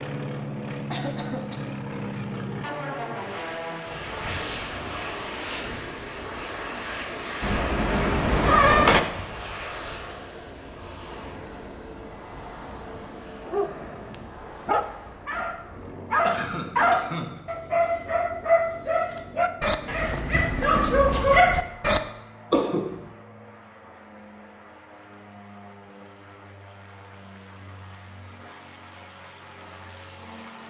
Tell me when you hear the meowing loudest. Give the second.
9 s.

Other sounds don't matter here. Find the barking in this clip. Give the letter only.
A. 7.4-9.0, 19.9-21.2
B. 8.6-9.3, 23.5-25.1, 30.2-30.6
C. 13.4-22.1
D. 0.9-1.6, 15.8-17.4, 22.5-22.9
C.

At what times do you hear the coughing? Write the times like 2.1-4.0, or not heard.
0.9-1.6, 15.8-17.4, 22.5-22.9.